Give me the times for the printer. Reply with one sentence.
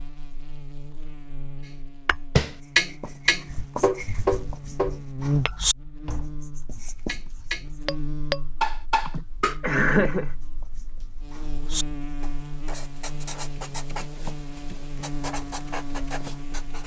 You can't hear the printer here.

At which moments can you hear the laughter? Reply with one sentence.
You can hear the laughter from 9.1 to 10.3 s.